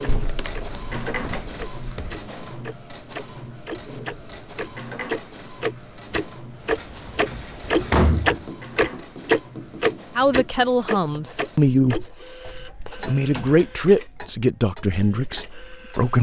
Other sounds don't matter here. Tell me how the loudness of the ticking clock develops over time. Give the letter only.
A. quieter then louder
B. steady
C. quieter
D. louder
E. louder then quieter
E.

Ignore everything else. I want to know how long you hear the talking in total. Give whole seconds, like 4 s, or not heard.
5 s.